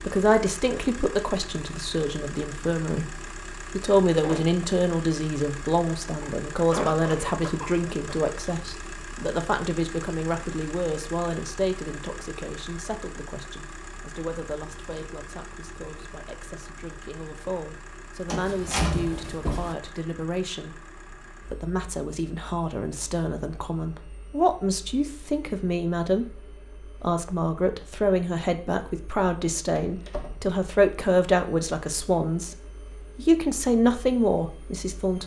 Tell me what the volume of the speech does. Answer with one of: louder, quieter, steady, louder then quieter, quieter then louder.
quieter then louder.